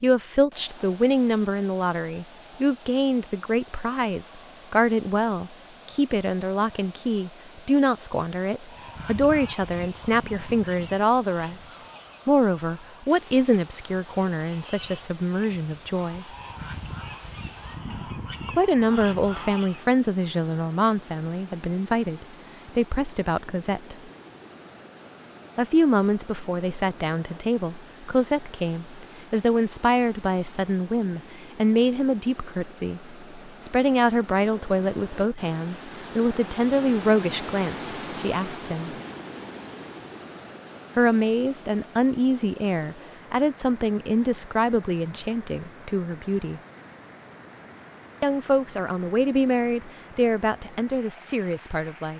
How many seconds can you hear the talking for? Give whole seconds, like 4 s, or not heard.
45 s.